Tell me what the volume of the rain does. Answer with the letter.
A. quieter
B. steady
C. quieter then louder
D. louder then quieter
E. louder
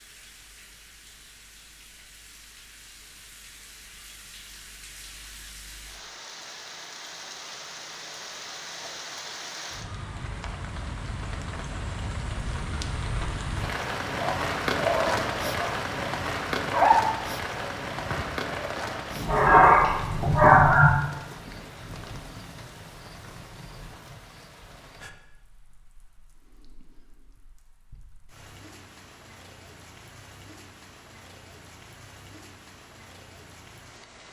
D.